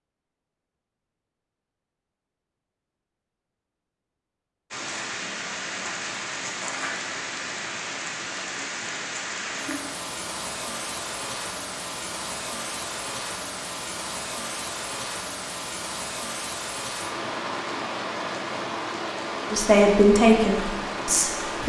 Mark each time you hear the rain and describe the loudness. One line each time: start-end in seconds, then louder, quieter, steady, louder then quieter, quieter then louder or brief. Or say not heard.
4.7-21.6 steady.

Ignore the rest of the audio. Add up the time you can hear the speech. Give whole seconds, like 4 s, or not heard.
2 s.